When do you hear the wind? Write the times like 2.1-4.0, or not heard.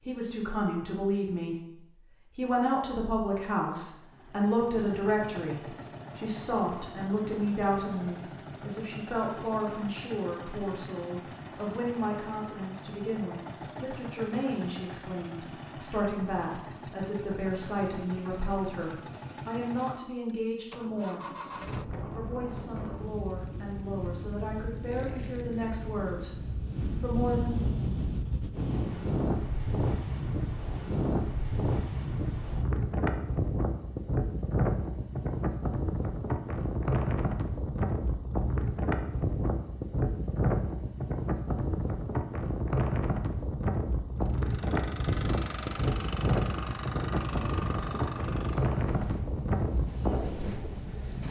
21.6-51.2.